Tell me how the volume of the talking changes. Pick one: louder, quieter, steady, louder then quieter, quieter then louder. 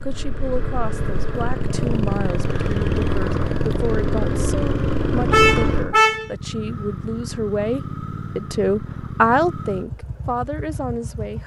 louder.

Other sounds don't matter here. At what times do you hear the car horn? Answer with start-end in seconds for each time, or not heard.
5.3-6.3.